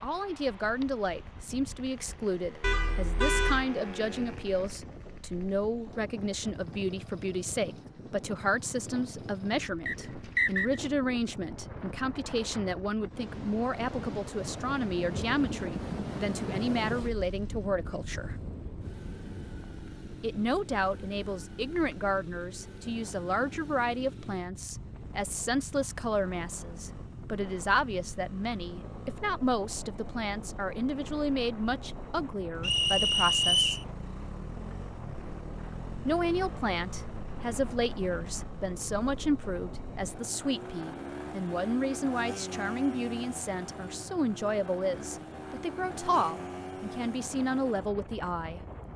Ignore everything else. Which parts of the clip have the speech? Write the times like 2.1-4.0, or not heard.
0.0-18.4, 20.2-33.8, 36.0-48.6.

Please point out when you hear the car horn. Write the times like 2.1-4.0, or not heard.
2.6-3.6.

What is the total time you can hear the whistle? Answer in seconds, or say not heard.
2 s.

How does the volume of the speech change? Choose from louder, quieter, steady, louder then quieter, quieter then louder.
steady.